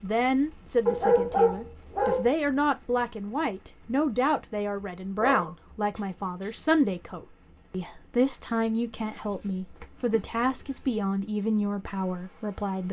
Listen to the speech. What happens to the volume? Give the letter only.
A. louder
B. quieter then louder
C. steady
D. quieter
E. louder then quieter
C.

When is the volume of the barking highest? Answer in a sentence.
The volume of the barking peaks at 1 second.